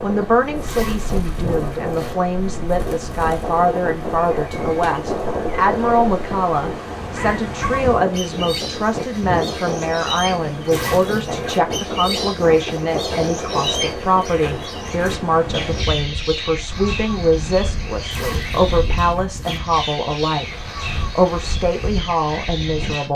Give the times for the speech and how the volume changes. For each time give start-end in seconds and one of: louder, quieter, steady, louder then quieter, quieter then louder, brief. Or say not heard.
0.0-20.6 steady
21.1-23.1 brief.